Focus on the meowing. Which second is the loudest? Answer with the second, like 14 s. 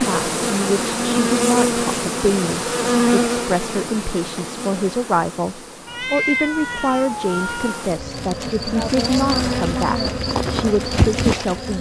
6 s.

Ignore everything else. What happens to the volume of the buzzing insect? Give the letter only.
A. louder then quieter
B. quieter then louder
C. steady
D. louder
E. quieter
B.